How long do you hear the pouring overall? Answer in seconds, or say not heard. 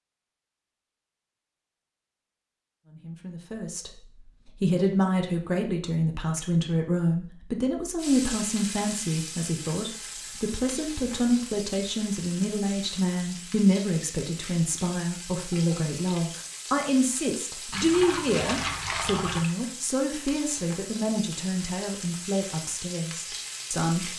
2 s.